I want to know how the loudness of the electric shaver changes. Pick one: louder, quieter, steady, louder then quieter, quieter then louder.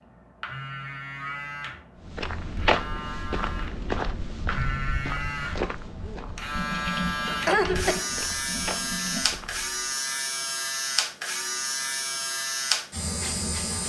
louder.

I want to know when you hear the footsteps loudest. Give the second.
3 s.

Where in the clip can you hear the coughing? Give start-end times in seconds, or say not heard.
7.2-8.1.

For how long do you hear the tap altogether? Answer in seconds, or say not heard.
3 s.